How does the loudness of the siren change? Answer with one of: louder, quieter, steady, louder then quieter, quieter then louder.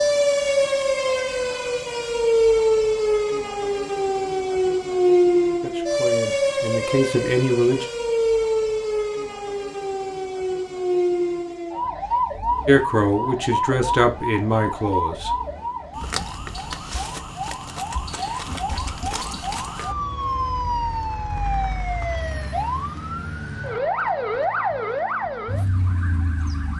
quieter.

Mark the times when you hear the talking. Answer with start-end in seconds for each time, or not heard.
5.6-7.8, 12.7-15.3.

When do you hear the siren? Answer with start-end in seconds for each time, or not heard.
0.0-26.7.